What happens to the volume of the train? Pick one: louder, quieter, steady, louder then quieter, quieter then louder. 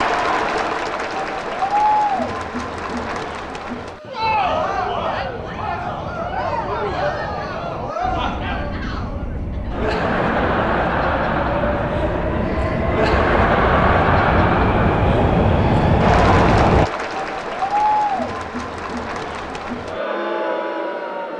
louder.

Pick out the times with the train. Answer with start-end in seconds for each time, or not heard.
4.2-16.9.